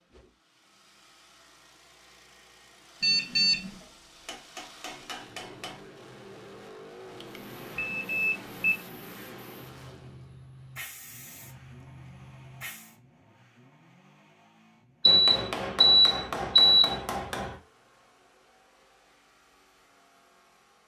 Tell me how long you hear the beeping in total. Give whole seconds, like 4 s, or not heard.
4 s.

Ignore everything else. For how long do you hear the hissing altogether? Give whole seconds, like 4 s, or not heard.
6 s.